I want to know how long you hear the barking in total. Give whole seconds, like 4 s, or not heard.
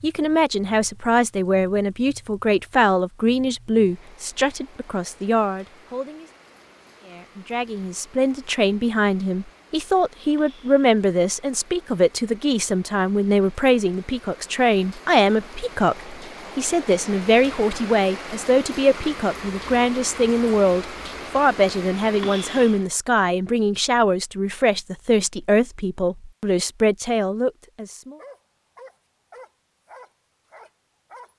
3 s.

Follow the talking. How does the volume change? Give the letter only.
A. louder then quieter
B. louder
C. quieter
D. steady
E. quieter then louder
D.